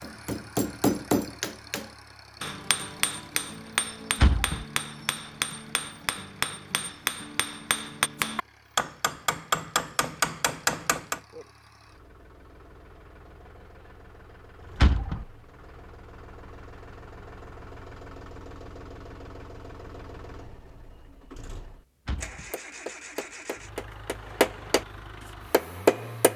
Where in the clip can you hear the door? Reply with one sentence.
The door can be heard from 4.2 to 4.7 s, from 14.8 to 15.2 s and from 22.1 to 22.5 s.